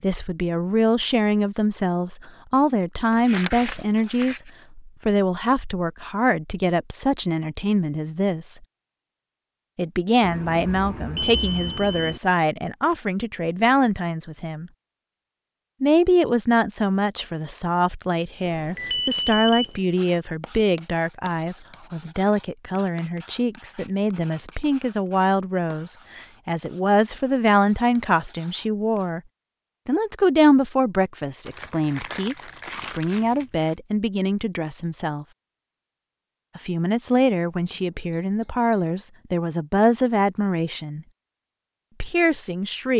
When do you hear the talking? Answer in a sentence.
The talking can be heard from 0.0 to 8.6 s, from 9.8 to 14.7 s, from 15.8 to 29.2 s, from 29.9 to 35.2 s, from 36.5 to 41.0 s and from 42.0 to 42.9 s.